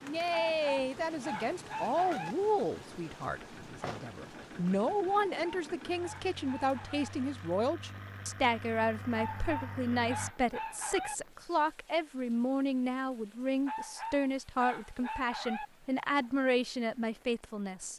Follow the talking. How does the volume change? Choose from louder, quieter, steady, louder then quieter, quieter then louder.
steady.